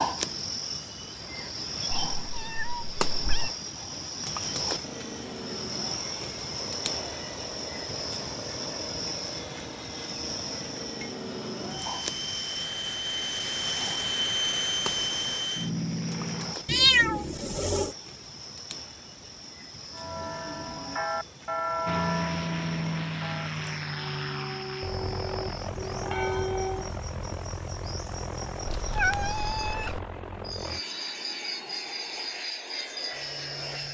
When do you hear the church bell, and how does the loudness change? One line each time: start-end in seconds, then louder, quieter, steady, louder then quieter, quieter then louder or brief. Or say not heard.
19.9-26.9 quieter then louder.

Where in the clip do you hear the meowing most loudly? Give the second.
17 s.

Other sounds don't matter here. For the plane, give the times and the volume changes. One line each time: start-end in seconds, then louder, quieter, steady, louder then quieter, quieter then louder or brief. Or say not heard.
4.8-16.6 louder
21.9-33.9 quieter.